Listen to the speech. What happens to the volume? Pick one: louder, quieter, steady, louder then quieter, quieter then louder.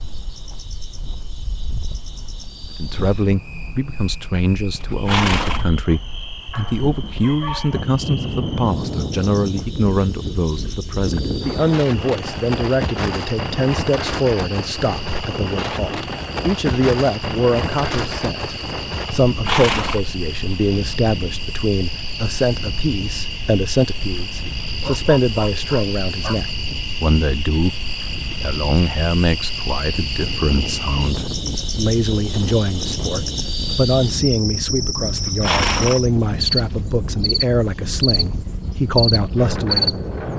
steady.